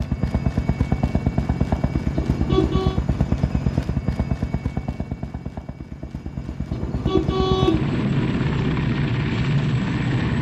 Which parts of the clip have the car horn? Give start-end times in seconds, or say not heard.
2.1-3.0, 6.7-8.8.